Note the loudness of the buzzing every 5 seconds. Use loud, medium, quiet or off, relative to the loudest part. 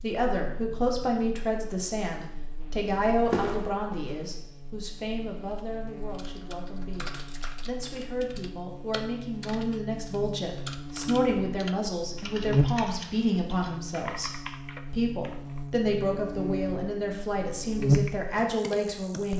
quiet, quiet, loud, loud.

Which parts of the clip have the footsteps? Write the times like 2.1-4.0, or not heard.
2.5-4.4.